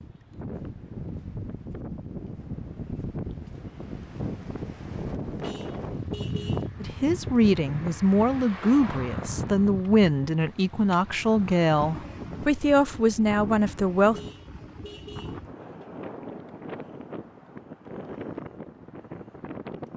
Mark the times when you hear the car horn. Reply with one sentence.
You can hear the car horn from 5.4 to 6.7 s and from 14.1 to 15.4 s.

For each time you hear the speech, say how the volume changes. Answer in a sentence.
You can hear the speech from 6.8 to 14.2 s, at a steady volume.